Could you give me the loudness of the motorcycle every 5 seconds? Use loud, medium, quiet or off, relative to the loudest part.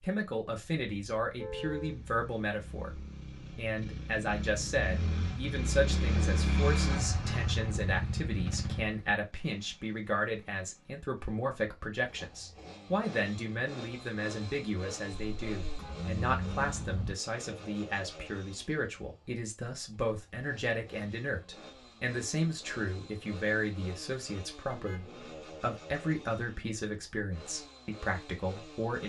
medium, loud, quiet, quiet, quiet, quiet.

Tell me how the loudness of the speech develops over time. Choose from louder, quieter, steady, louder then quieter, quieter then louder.
steady.